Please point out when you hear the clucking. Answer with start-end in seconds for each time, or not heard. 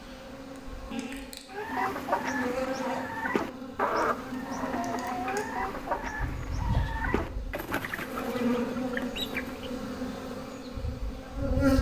1.5-9.7.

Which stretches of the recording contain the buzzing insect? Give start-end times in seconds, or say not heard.
0.0-11.7.